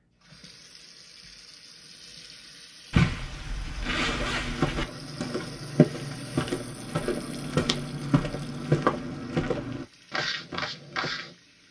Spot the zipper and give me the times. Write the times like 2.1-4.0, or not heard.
2.9-4.8.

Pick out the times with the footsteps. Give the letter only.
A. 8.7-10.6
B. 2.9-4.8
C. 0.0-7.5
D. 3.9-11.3
D.